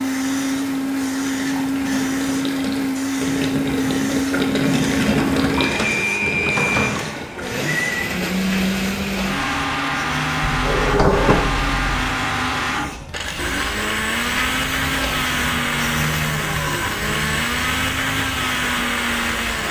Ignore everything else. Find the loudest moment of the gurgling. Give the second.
5 s.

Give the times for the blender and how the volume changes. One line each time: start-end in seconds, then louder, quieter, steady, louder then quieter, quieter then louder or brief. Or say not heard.
0.0-19.6 steady.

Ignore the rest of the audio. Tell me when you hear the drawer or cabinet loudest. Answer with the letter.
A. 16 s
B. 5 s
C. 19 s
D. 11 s
D.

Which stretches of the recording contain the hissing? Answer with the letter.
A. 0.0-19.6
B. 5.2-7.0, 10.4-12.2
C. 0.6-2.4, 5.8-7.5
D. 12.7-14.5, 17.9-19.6
A.